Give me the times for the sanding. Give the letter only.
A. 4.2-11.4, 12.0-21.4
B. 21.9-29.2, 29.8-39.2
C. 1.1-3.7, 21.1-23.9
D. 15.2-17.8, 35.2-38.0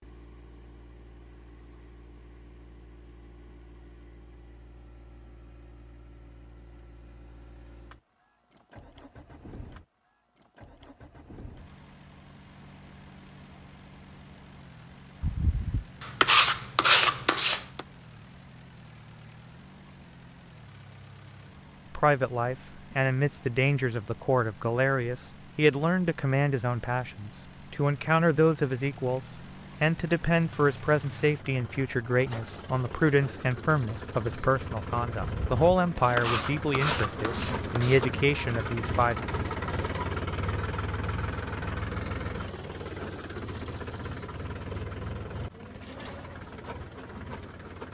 D.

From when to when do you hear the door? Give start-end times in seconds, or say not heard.
not heard.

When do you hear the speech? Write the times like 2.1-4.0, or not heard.
21.9-29.2, 29.8-39.2.